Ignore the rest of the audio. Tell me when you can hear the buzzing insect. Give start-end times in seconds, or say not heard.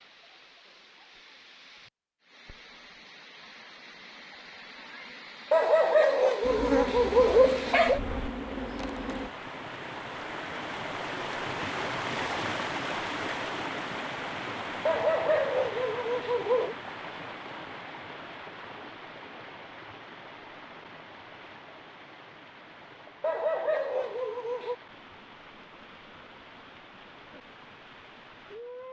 6.4-9.3.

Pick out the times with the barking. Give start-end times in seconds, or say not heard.
5.5-8.0, 14.8-16.8, 23.2-24.8.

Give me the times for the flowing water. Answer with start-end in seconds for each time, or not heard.
0.0-28.8.